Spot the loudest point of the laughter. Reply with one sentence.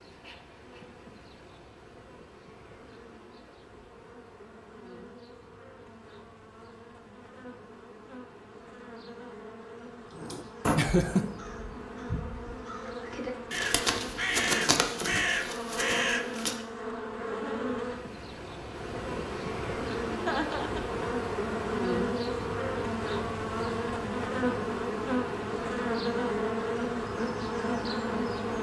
The loudest moment of the laughter is at 11 seconds.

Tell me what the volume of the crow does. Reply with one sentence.
The loudness of the crow goes down, then up.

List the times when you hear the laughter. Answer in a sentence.
The laughter can be heard from 10.8 to 11.3 s and from 20.2 to 21.1 s.